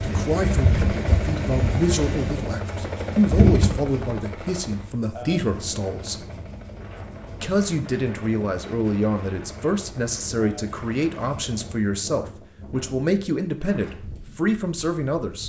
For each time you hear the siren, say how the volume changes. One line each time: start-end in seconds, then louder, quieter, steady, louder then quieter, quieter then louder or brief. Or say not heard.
not heard.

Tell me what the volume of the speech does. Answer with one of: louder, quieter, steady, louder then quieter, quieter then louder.
steady.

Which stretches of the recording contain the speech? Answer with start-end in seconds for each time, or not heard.
0.0-6.2, 7.4-15.4.